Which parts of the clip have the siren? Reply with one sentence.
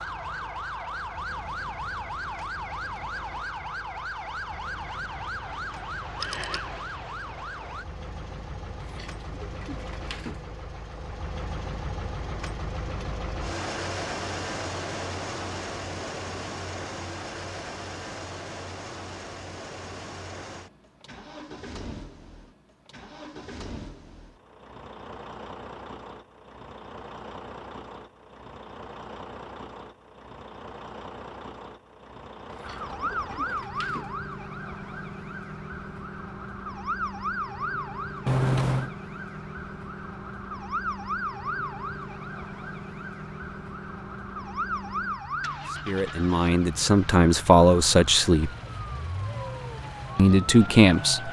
The siren can be heard from 0.0 to 7.8 s and from 32.6 to 51.2 s.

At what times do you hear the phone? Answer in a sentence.
The phone can be heard from 6.2 to 6.7 s and from 38.2 to 38.9 s.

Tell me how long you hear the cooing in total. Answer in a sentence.
You can hear the cooing for 3 seconds altogether.